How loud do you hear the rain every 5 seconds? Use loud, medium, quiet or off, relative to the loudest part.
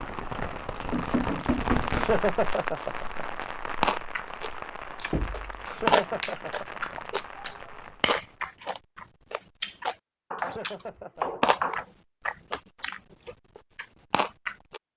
loud, medium, off.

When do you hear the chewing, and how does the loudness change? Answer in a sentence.
The chewing can be heard from 3.8 to 14.8 s, getting quieter.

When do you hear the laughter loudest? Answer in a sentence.
The volume of the laughter peaks at 2 seconds.